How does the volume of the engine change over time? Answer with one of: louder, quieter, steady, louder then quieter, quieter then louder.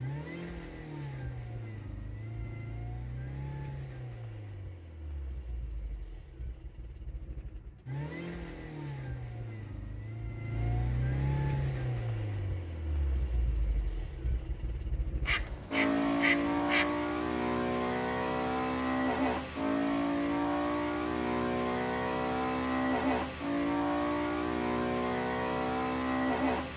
louder.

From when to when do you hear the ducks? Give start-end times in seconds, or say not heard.
15.2-16.9.